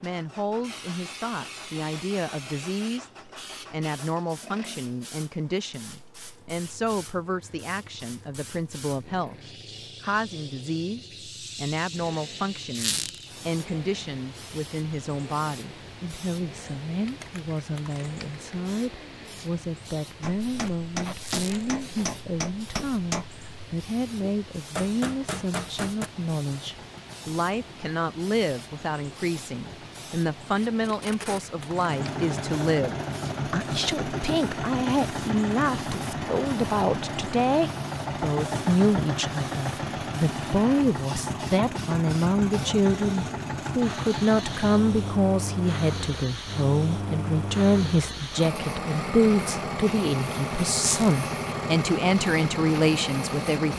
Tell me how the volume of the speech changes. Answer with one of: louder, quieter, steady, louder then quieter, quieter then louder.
louder.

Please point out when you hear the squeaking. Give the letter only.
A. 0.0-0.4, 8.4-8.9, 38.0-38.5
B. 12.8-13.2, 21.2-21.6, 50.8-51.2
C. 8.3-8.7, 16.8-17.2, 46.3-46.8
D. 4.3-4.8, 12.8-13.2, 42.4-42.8
B.